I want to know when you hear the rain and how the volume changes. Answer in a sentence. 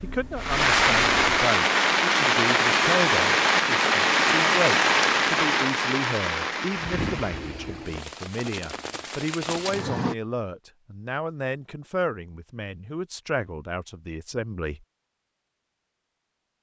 You can hear the rain from 0.0 to 10.2 s, getting quieter.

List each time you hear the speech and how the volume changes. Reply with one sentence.
You can hear the speech from 0.0 to 14.8 s, at a steady volume.